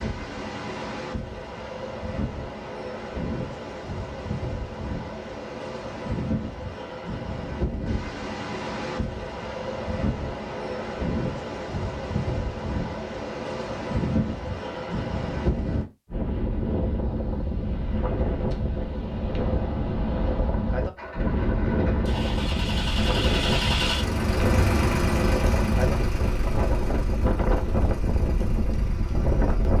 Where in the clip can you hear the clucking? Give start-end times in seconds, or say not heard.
not heard.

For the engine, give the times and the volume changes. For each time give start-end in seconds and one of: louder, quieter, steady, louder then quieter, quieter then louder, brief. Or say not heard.
20.9-29.7 louder then quieter.